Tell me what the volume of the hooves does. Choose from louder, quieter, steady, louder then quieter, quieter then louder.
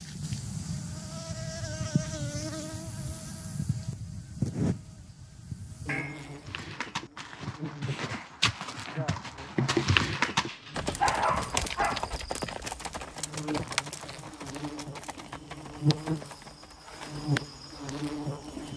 louder then quieter.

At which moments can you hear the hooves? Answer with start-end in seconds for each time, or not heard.
6.5-16.8.